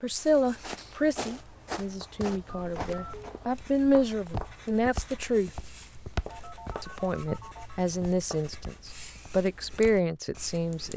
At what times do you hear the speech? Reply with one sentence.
You can hear the speech from 0.0 to 5.5 s and from 6.8 to 10.9 s.